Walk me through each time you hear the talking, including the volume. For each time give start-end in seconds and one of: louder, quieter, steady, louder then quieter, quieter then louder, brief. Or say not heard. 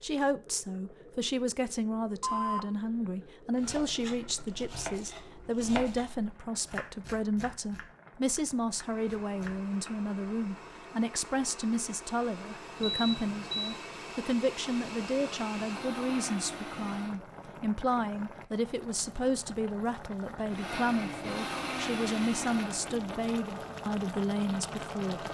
0.0-25.2 steady.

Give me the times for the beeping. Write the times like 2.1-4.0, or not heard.
2.2-3.2, 12.8-13.8.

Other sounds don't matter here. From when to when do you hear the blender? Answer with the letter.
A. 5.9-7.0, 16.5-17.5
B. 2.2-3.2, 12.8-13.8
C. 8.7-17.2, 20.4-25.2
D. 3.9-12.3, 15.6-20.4
C.